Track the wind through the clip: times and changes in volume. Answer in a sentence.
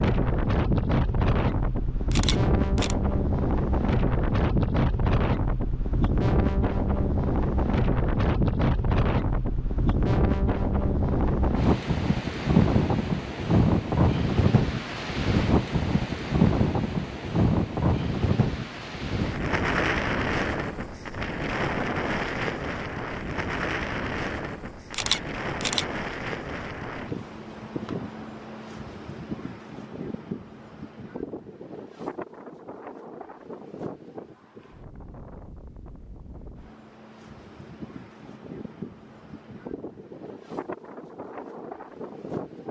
The wind can be heard from 0.0 to 42.6 s, getting quieter.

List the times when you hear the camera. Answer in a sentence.
You can hear the camera from 2.1 to 3.0 s and from 24.9 to 25.9 s.